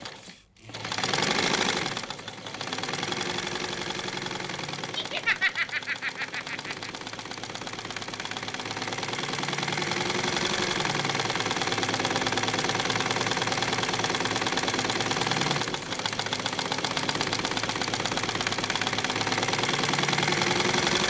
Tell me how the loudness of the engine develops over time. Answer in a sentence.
The loudness of the engine goes down, then up.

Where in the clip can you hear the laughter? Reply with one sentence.
You can hear the laughter from 5.0 to 6.9 s.